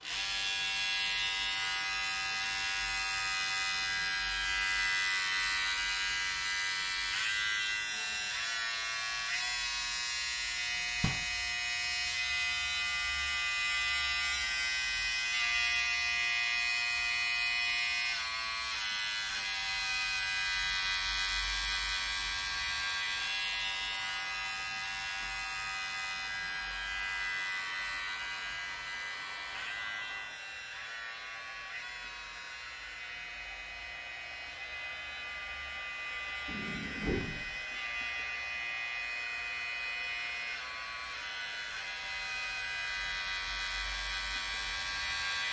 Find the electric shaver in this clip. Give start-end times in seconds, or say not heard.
0.0-45.4.